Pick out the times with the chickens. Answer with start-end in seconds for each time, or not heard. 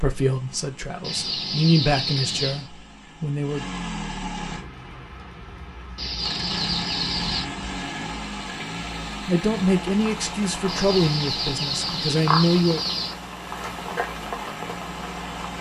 1.0-2.7, 6.0-7.5, 10.7-13.2.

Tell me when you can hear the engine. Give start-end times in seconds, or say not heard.
0.0-4.7, 6.2-15.5.